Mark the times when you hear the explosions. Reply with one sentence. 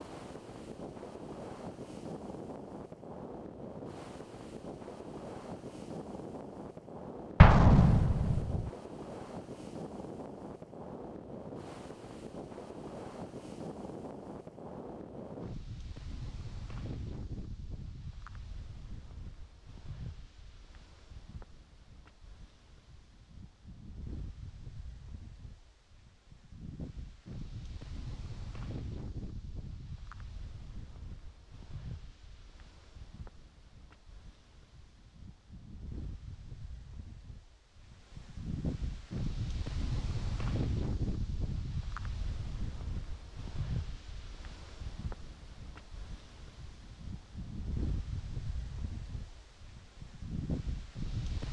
You can hear the explosions from 7.4 to 8.7 s.